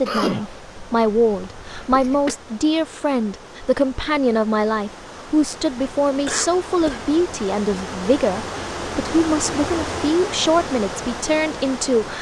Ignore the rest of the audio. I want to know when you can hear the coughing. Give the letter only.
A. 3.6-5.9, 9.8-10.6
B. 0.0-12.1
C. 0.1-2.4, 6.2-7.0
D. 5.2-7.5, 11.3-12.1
C.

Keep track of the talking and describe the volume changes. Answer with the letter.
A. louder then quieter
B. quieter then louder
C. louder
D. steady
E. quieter
D.